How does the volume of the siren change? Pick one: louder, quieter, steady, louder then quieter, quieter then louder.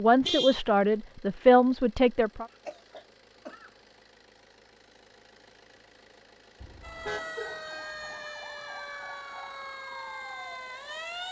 steady.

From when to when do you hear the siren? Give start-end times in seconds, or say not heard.
6.8-11.2.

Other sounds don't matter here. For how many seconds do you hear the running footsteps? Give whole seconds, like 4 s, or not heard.
not heard.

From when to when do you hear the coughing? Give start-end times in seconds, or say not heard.
2.5-3.7, 7.0-8.2.